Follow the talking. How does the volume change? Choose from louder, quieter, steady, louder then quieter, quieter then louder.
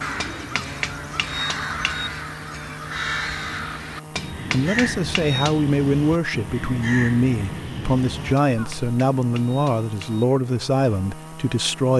steady.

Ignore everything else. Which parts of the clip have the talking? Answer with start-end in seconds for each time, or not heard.
4.5-11.9.